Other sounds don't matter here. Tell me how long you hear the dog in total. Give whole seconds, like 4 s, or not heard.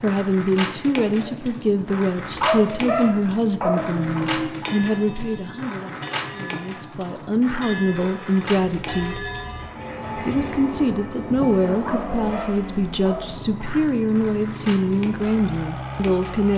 4 s.